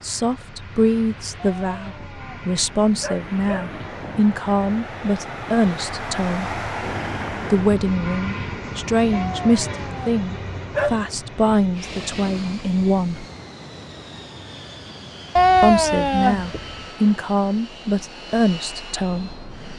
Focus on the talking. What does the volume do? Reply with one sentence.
The volume of the talking stays about the same.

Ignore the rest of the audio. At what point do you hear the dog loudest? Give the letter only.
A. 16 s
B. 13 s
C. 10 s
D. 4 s
A.